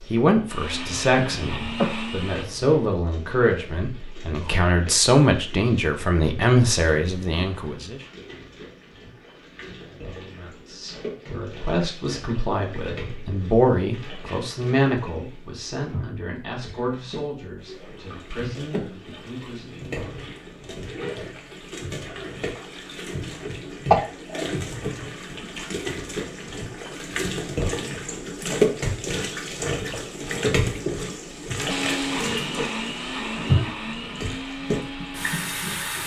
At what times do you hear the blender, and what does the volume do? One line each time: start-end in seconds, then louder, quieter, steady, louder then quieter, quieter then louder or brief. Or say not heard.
0.0-2.5 brief
31.6-36.0 quieter.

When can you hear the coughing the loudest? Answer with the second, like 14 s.
24 s.